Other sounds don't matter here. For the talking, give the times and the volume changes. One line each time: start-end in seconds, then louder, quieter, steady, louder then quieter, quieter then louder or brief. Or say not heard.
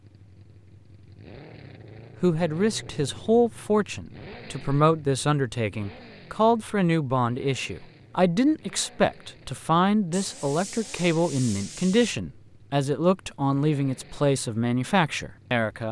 2.2-15.8 steady.